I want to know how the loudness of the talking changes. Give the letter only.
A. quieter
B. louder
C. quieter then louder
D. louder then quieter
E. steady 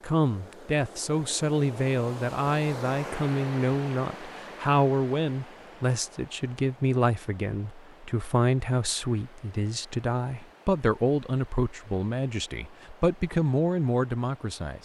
E.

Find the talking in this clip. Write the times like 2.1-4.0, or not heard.
0.0-14.8.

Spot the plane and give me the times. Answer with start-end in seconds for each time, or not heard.
not heard.